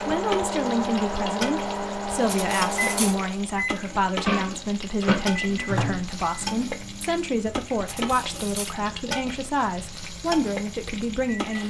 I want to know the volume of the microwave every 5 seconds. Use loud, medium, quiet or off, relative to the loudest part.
loud, medium, quiet.